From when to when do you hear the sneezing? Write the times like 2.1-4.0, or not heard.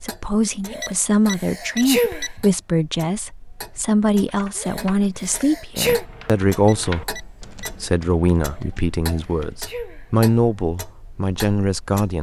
0.7-2.4, 4.5-6.0, 8.4-10.2.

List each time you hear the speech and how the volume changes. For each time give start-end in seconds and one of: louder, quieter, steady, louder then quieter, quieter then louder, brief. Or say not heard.
0.0-12.1 steady.